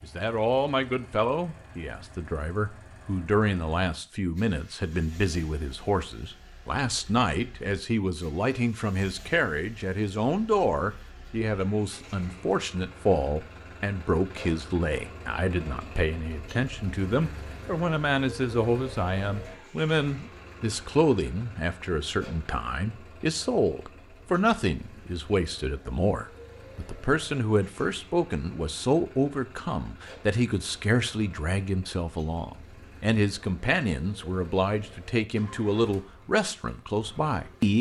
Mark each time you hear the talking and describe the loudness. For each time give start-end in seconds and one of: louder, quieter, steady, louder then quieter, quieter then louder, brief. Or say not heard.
0.0-37.7 steady.